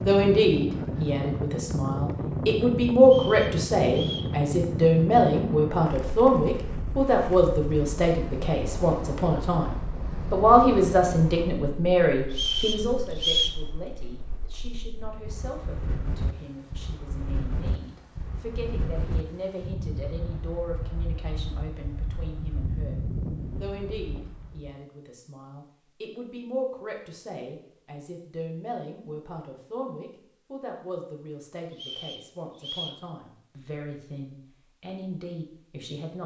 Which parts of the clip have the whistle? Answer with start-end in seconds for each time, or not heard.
3.0-4.3, 12.3-13.6, 31.7-33.0.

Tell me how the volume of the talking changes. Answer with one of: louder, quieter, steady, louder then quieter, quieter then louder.
quieter.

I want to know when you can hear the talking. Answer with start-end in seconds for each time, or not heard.
0.0-36.2.